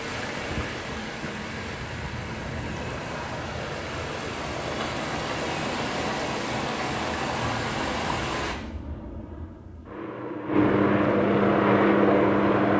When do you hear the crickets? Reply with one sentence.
You can't hear the crickets here.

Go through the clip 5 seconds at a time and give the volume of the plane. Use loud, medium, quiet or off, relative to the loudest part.
quiet, quiet, loud.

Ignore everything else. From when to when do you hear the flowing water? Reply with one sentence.
You can hear the flowing water from 0.0 to 8.6 s.